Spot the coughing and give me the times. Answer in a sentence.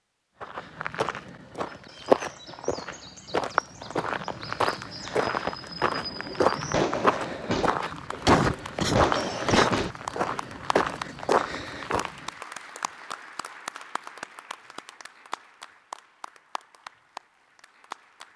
You can hear the coughing from 8.2 to 9.7 s.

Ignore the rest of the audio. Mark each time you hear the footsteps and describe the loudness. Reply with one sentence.
You can hear the footsteps from 0.4 to 12.2 s, at a steady volume.